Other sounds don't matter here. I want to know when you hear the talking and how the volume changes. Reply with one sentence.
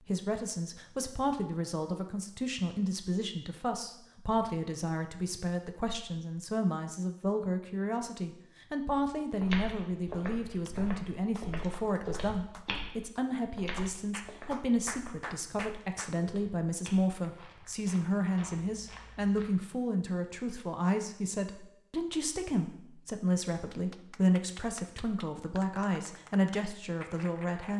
The talking can be heard from 0.0 to 27.7 s, at a steady volume.